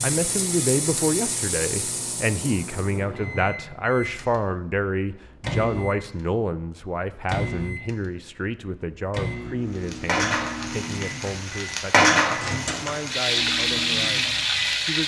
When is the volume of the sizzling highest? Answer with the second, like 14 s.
12 s.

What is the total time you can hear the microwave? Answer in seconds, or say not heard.
15 s.